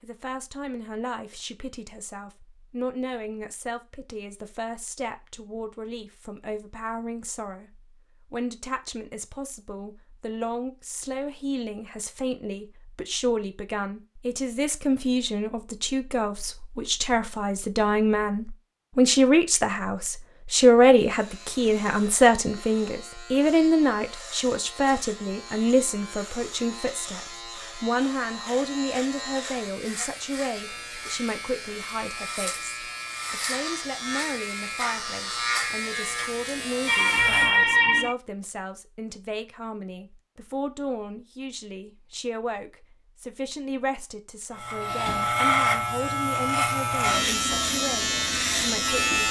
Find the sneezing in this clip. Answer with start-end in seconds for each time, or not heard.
36.9-38.1.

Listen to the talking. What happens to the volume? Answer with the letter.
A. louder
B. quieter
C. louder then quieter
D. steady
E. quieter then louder
C.